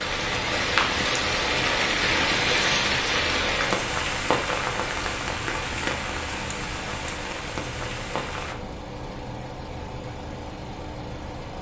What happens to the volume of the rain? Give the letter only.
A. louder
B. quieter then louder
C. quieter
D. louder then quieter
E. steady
C.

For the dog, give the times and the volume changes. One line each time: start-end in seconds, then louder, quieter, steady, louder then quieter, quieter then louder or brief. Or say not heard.
not heard.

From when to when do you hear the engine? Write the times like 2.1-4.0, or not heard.
0.0-11.5.